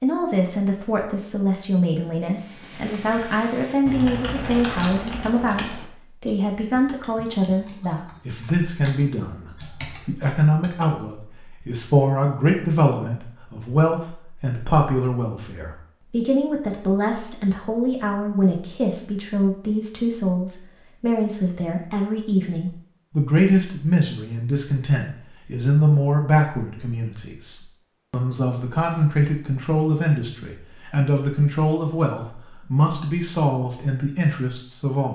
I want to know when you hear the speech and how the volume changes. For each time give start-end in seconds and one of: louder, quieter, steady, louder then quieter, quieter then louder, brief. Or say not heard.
0.0-35.1 steady.